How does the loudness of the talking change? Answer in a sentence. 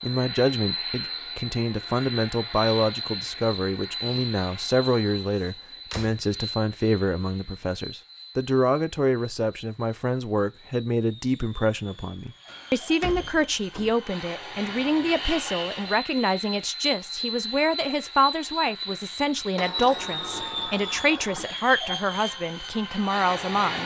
The loudness of the talking stays about the same.